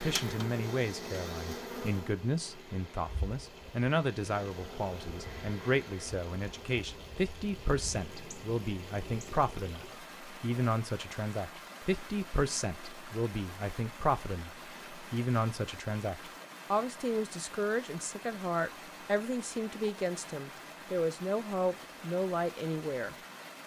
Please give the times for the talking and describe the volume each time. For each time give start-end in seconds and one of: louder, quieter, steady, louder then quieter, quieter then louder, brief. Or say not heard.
0.0-23.1 steady.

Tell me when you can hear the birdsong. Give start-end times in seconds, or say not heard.
not heard.